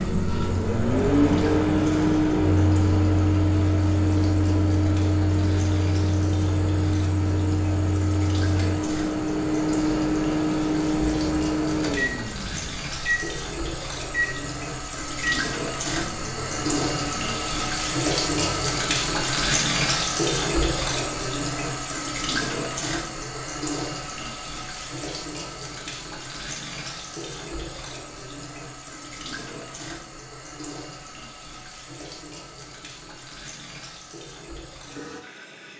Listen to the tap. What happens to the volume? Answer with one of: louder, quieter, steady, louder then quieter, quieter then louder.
louder then quieter.